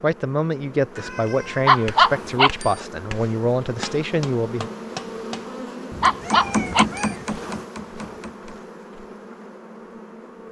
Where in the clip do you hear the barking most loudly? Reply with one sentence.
The loudest moment of the barking is at 2 seconds.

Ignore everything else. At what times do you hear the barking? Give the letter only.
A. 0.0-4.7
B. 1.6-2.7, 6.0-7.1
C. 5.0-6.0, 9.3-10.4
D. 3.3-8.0
B.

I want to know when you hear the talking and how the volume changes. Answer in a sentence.
The talking can be heard from 0.0 to 4.7 s, at a steady volume.